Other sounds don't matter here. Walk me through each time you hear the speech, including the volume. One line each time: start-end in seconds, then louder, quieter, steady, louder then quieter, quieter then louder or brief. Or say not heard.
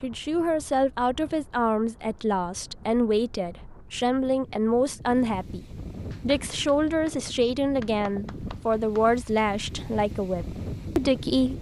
0.0-11.5 steady.